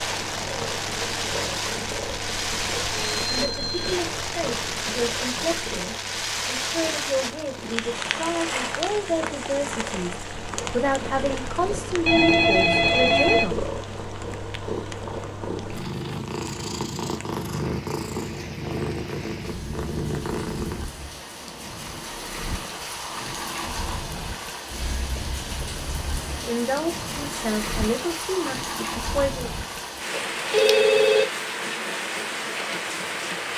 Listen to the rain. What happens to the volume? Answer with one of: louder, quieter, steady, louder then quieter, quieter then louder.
quieter then louder.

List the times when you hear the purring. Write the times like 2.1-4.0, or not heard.
0.0-20.9.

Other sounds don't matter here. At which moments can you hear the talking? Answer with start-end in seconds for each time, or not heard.
3.2-13.6, 26.3-29.5.